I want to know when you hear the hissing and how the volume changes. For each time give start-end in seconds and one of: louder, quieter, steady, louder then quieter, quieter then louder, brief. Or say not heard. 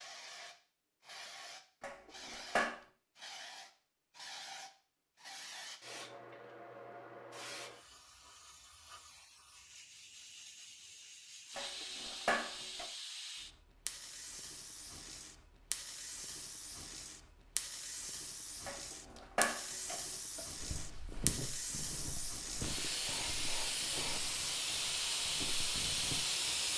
0.0-26.7 louder.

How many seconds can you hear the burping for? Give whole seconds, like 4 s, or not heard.
4 s.